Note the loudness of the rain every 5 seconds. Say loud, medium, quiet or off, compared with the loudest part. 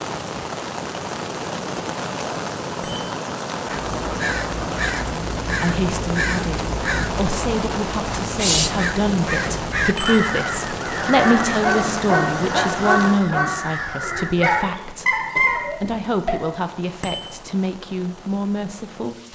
loud, loud, loud, quiet.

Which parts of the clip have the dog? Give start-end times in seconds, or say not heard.
11.2-16.4.